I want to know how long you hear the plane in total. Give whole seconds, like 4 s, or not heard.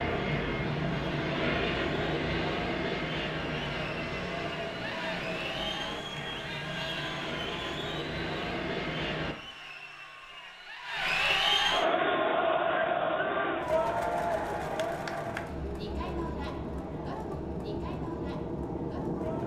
17 s.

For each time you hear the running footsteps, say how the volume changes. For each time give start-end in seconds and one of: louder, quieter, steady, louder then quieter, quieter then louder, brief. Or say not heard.
not heard.